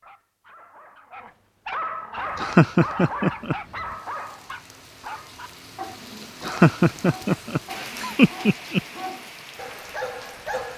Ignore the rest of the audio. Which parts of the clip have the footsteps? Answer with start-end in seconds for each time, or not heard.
not heard.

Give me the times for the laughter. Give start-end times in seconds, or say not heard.
2.4-3.5, 6.4-8.8.